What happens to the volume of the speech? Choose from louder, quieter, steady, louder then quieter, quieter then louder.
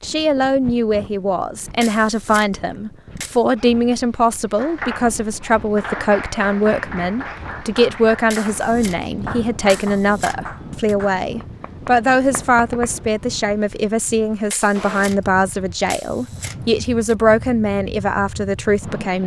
steady.